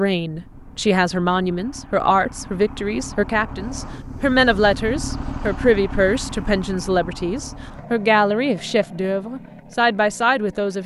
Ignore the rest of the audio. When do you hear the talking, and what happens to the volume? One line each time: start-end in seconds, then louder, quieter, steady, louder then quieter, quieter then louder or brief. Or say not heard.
0.0-10.8 steady.